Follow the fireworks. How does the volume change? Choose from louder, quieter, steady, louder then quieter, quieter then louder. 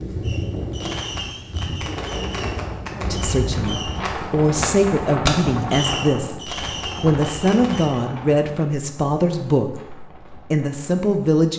louder then quieter.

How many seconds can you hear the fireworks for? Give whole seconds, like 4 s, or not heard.
8 s.